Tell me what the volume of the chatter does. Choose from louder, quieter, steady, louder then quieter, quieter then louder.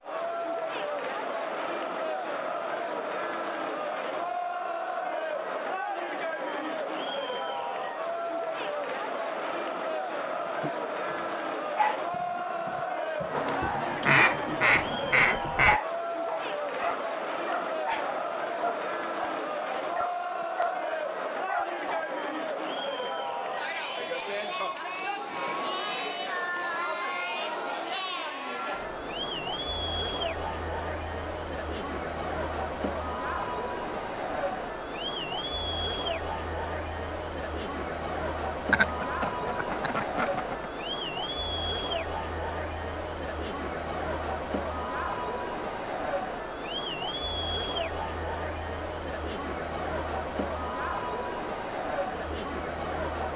steady.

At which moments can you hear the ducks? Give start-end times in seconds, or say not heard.
13.3-15.8, 38.7-40.7.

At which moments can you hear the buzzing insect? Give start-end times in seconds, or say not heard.
not heard.